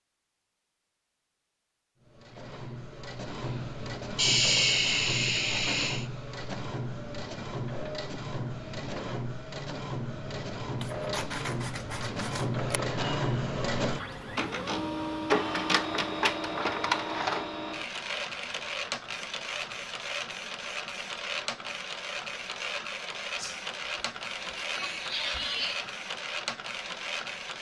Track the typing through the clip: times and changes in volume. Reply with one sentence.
The typing can't be heard in this clip.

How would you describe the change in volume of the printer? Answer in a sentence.
The loudness of the printer goes up, then down.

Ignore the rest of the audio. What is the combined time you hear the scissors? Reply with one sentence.
The scissors can be heard for 2 seconds in total.